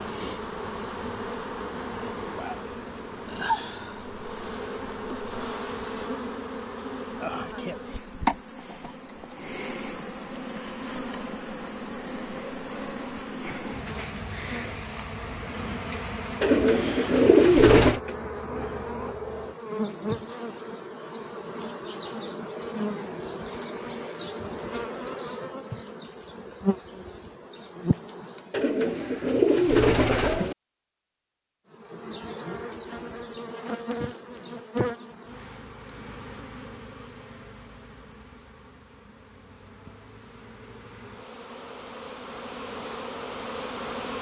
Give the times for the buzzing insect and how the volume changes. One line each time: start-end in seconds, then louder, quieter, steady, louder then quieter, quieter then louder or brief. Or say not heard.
0.0-28.8 steady
31.7-44.1 quieter then louder.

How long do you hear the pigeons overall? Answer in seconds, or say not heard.
4 s.